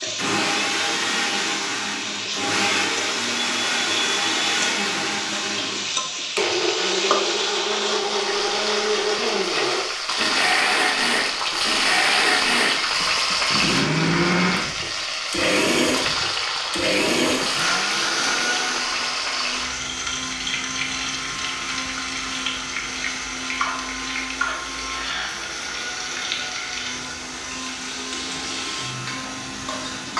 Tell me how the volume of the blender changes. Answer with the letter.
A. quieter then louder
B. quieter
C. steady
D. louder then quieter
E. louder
B.